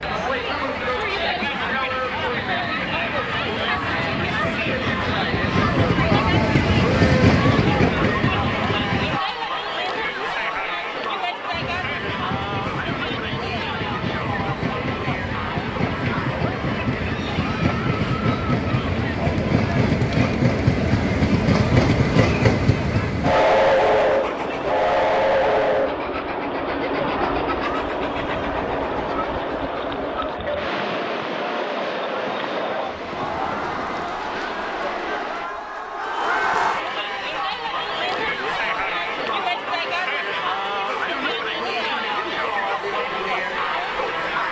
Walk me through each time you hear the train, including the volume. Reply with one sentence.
You can hear the train from 0.0 to 9.2 s, getting louder; and from 11.5 to 35.5 s, getting louder then quieter.